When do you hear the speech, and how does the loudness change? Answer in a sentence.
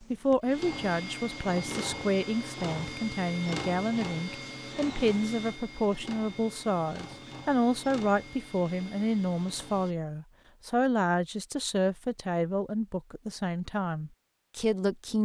You can hear the speech from 0.0 to 15.2 s, at a steady volume.